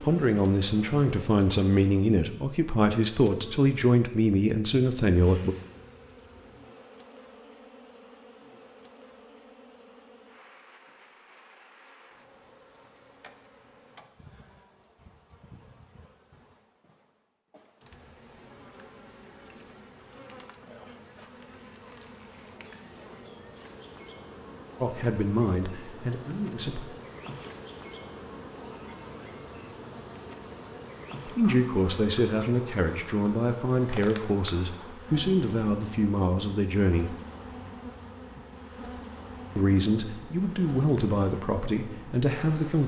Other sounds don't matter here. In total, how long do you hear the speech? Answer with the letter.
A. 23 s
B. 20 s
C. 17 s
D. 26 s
C.